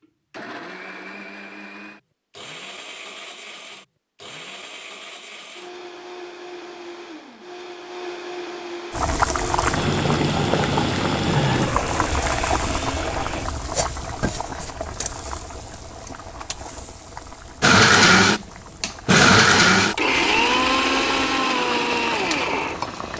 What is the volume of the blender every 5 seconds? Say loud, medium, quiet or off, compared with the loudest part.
quiet, quiet, quiet, loud, medium.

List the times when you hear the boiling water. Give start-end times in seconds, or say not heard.
8.9-23.1.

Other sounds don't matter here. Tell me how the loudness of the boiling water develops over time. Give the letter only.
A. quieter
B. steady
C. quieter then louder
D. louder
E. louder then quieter
C.